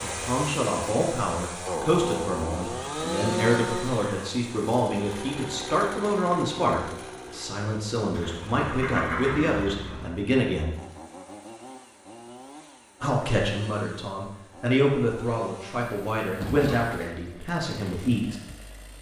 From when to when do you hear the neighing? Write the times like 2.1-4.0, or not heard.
2.6-4.2, 8.1-10.1, 16.4-17.1.